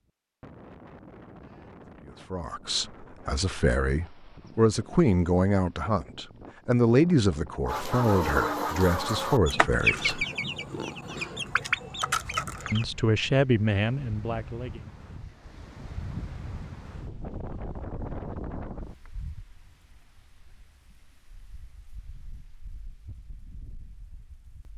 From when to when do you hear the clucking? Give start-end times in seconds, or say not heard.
7.7-12.8.